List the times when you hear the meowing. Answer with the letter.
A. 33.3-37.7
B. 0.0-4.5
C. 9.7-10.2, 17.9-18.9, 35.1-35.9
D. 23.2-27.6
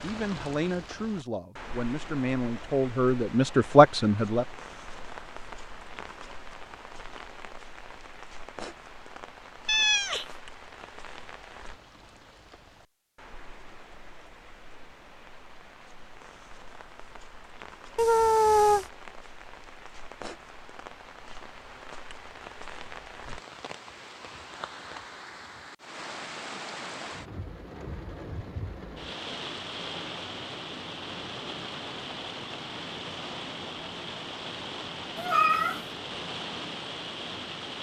C.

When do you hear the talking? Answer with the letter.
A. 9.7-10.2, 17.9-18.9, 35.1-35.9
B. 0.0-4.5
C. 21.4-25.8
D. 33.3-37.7
B.